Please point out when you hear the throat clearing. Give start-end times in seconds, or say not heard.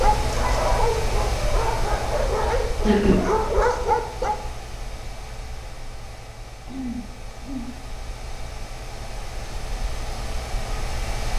2.4-3.2, 6.7-7.7.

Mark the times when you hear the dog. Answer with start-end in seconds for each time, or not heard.
0.0-4.4.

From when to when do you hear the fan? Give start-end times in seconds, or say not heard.
0.0-11.3.